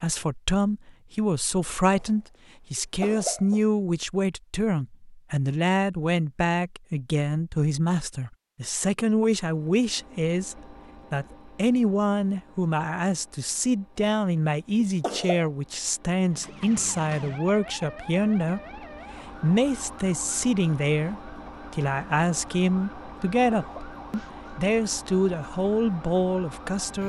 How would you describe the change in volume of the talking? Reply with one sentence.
The volume of the talking stays about the same.